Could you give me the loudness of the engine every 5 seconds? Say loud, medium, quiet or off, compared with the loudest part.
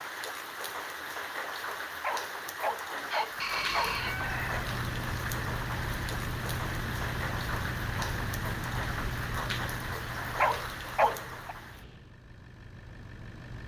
loud, loud, medium.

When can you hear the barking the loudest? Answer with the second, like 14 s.
11 s.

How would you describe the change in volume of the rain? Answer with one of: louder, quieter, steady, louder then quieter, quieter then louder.
steady.